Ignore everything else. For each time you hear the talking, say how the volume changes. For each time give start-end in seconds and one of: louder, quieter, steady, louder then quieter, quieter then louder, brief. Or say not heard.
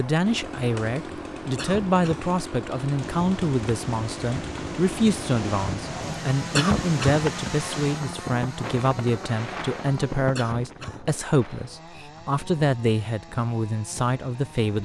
0.0-14.8 steady.